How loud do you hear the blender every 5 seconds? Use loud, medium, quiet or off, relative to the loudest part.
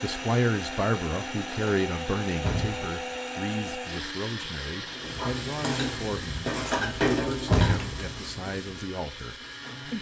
loud, medium.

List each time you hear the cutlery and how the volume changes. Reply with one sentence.
The cutlery can't be heard in this clip.